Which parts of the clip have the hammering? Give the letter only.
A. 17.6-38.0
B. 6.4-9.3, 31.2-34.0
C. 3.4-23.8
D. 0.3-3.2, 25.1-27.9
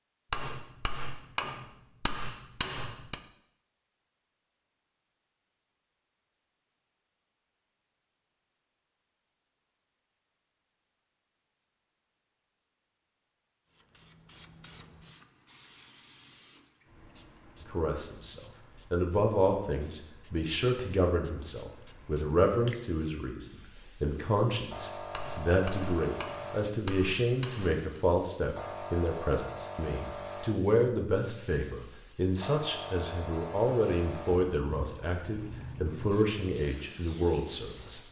D.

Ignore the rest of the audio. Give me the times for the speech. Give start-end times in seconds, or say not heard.
17.6-38.0.